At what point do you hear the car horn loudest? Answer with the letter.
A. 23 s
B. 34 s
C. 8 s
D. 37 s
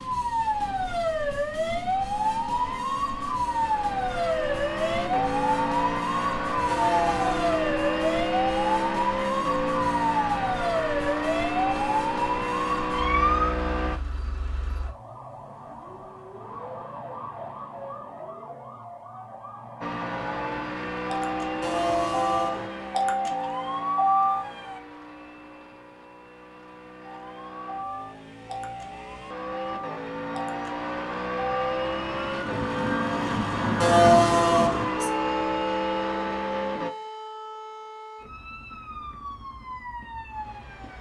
B.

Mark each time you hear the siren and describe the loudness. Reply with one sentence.
The siren can be heard from 0.0 to 24.8 s, getting quieter then louder; and from 27.0 to 40.9 s, getting louder then quieter.